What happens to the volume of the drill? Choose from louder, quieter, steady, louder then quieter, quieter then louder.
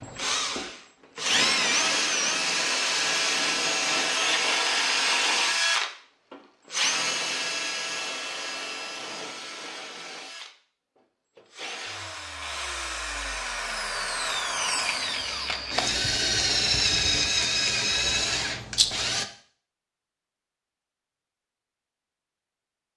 quieter then louder.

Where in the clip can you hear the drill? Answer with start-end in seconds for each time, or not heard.
0.0-19.2.